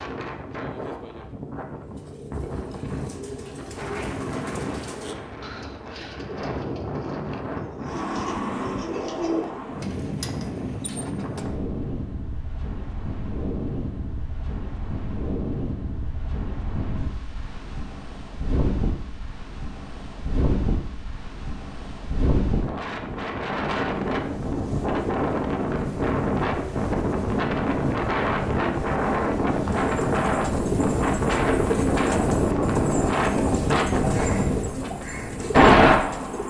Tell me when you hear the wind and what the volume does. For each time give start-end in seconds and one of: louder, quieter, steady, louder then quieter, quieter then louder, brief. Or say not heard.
0.0-36.4 louder.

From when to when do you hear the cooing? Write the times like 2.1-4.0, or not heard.
1.9-11.5, 29.6-36.4.